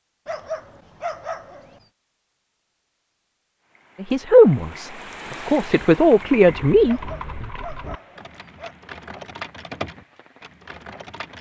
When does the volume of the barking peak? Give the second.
1 s.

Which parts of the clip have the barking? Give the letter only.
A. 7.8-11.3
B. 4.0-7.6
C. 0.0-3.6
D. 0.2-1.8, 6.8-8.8
D.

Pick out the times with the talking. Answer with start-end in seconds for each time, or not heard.
4.0-7.6.